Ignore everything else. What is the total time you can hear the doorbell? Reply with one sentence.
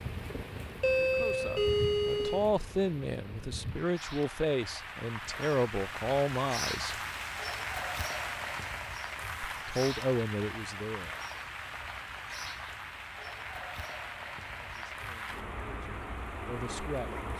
The doorbell can be heard for 2 seconds in total.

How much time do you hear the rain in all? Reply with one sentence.
You can hear the rain for 17 seconds altogether.